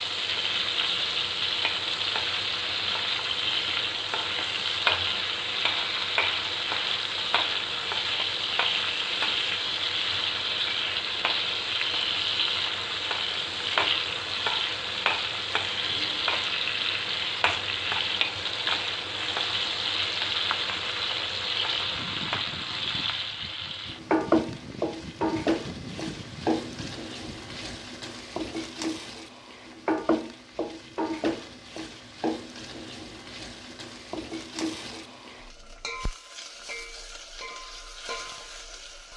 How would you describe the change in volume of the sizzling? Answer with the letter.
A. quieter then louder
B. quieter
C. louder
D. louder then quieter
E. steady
B.